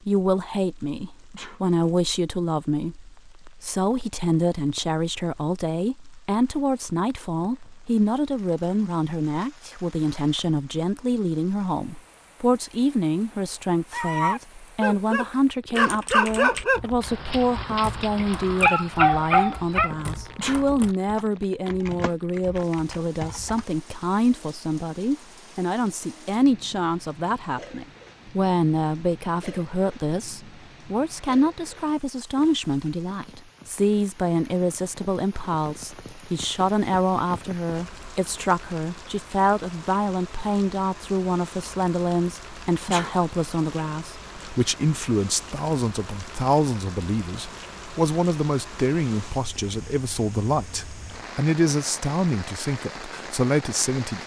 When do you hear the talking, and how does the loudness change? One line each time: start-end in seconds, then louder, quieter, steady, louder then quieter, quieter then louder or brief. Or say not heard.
0.1-54.2 steady.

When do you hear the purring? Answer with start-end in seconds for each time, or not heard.
not heard.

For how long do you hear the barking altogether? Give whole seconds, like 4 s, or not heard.
6 s.